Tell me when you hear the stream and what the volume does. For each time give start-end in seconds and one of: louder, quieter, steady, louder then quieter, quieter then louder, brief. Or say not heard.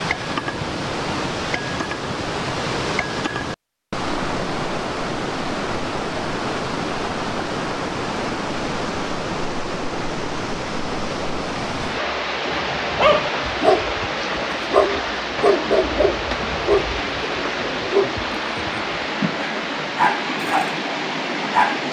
0.0-21.8 steady.